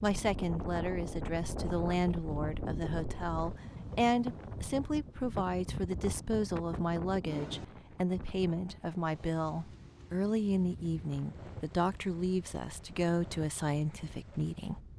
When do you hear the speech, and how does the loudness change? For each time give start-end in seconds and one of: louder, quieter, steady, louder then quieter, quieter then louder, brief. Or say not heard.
0.0-14.8 steady.